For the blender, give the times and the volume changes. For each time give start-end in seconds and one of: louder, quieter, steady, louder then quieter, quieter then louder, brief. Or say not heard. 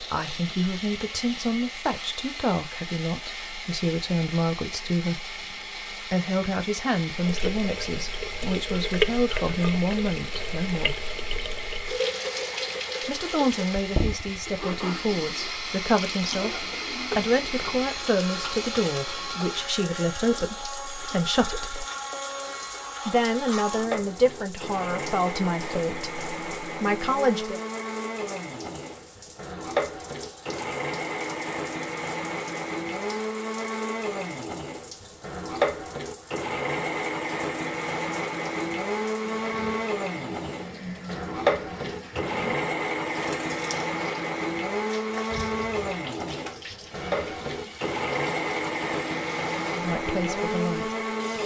0.0-51.4 louder.